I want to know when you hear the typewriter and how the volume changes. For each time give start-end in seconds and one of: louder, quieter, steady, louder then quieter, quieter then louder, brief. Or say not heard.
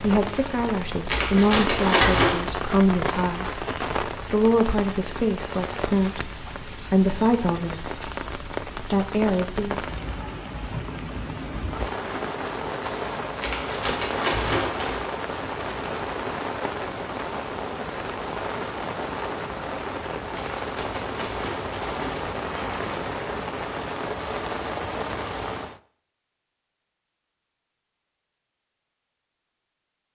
not heard.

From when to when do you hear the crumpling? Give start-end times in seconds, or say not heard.
1.1-2.5, 13.4-15.1, 20.3-23.1.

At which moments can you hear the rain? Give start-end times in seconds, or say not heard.
0.0-25.8.